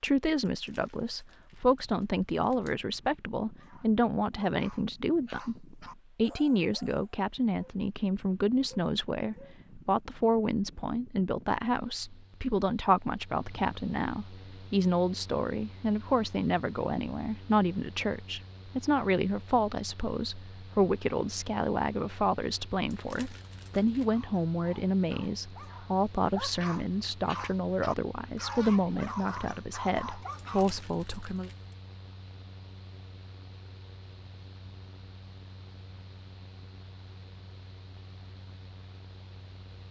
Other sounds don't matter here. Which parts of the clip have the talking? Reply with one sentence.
You can hear the talking from 0.0 to 31.5 s.